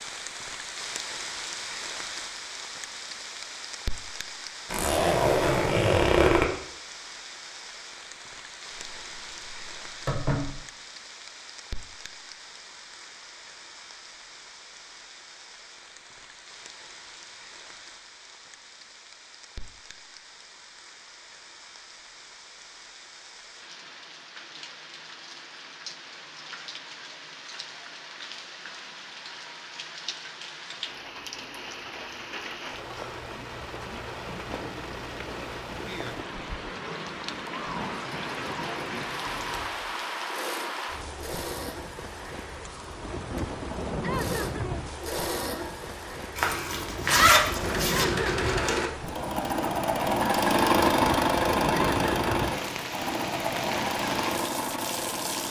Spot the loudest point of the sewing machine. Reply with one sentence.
The loudest moment of the sewing machine is at 51 seconds.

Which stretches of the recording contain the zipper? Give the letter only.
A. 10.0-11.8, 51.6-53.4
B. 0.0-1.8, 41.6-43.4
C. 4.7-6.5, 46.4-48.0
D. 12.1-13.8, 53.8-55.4
C.